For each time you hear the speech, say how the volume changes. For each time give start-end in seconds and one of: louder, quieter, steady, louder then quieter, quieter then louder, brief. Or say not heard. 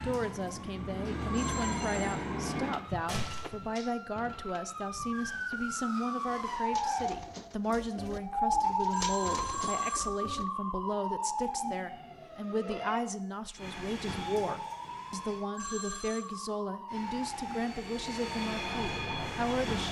0.0-19.8 steady.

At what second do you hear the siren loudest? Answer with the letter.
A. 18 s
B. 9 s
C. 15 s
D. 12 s
B.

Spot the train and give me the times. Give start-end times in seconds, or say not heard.
0.0-2.8, 13.6-15.4, 16.9-19.8.